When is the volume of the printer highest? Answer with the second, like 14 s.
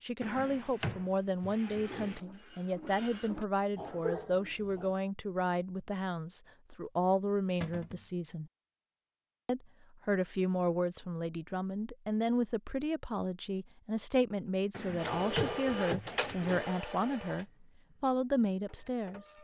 16 s.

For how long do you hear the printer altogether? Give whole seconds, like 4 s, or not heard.
6 s.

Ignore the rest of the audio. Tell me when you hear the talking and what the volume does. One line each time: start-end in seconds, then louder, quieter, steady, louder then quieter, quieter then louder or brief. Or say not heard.
0.0-8.5 steady
9.4-19.3 steady.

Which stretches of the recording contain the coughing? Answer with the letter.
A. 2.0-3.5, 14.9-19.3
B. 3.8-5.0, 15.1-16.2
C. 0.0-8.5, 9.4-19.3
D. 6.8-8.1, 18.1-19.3
B.